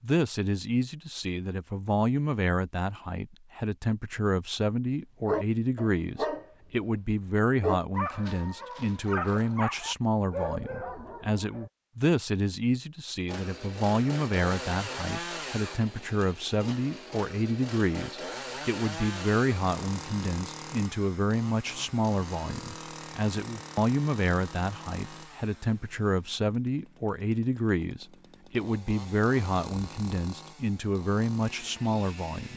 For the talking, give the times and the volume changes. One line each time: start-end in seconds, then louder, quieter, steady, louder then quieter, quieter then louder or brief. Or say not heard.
0.0-32.5 steady.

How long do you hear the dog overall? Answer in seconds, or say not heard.
5 s.